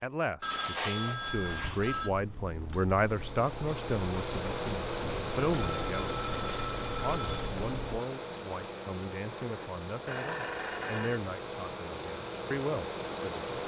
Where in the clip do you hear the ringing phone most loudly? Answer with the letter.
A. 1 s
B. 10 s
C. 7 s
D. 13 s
A.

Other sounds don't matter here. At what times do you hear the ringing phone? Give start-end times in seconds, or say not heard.
0.4-2.1, 5.0-7.5, 9.4-11.2.